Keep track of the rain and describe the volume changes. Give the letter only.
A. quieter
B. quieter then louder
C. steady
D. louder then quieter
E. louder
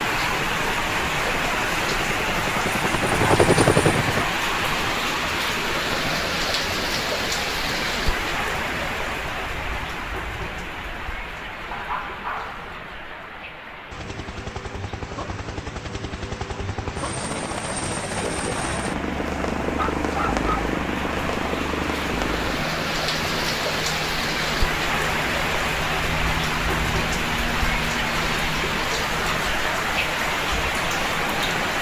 B.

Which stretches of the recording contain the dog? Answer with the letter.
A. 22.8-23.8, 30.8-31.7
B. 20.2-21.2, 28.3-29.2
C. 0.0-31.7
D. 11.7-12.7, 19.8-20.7
D.